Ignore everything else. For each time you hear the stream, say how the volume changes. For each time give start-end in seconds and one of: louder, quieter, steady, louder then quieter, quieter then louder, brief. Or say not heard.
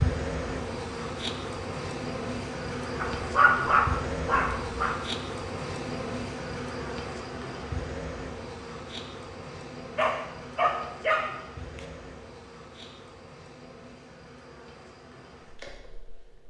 not heard.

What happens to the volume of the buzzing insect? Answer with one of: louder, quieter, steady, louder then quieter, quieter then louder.
quieter.